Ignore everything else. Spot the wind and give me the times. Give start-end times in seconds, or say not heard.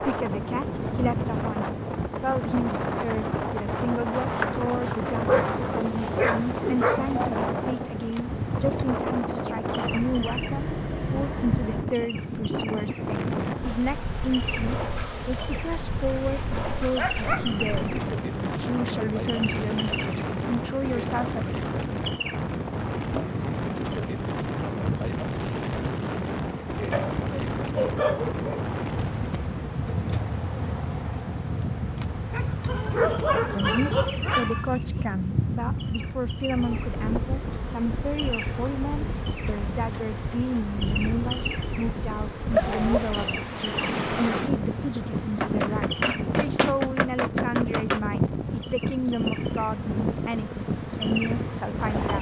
0.0-52.1.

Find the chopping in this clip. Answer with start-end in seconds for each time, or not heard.
4.3-6.2, 45.4-48.0.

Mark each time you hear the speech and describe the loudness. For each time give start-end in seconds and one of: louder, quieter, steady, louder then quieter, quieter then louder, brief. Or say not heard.
0.0-21.6 steady
33.5-52.1 steady.